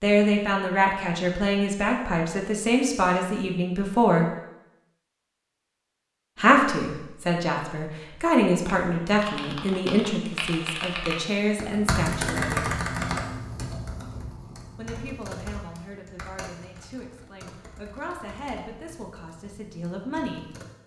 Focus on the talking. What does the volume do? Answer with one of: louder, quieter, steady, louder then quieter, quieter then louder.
quieter.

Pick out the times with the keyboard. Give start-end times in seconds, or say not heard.
8.7-20.7.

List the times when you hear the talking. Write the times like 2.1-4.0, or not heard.
0.0-4.2, 6.3-12.8, 14.8-20.4.